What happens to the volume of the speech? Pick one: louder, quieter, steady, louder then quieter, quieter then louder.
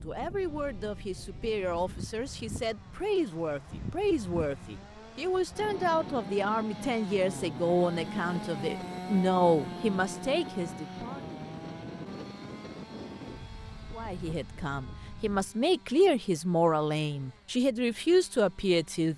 louder.